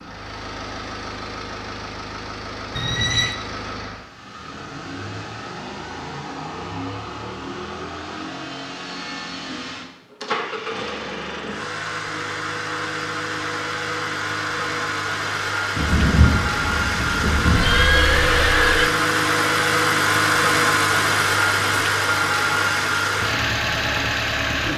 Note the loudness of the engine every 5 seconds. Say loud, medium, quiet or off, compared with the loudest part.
quiet, quiet, medium, loud, loud.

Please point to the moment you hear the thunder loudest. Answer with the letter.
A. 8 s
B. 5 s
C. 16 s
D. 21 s
C.